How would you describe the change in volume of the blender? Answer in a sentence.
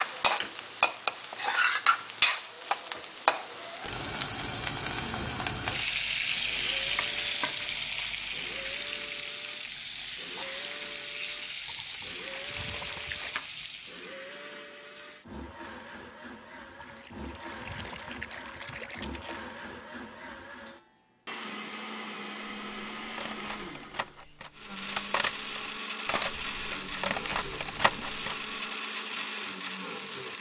The loudness of the blender goes up.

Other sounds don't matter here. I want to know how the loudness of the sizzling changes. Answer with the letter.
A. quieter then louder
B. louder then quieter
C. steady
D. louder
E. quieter
E.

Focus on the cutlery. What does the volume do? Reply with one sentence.
The volume of the cutlery goes up.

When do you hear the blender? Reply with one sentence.
You can hear the blender from 6.5 to 30.3 s.